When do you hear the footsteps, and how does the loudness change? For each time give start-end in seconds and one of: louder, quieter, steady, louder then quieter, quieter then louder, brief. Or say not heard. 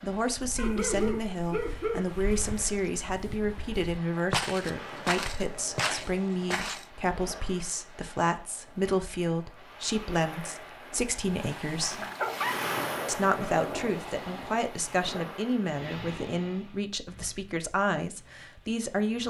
0.4-6.8 louder.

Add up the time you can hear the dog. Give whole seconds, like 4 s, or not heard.
3 s.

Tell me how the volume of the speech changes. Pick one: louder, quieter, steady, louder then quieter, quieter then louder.
steady.